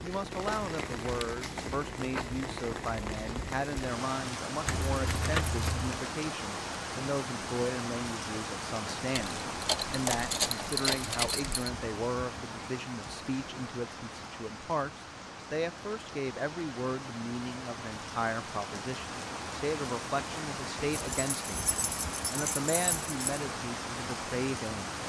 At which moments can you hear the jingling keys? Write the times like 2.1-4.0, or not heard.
4.7-6.0, 9.2-11.7, 20.9-23.4.